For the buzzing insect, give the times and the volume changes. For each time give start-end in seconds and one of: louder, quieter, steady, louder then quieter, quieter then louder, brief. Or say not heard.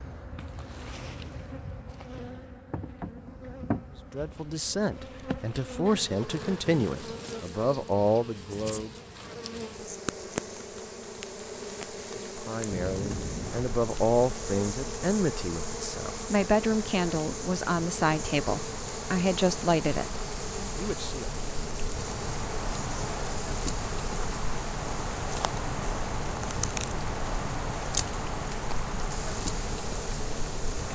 0.0-30.8 steady.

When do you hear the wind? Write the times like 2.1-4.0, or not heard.
12.7-30.8.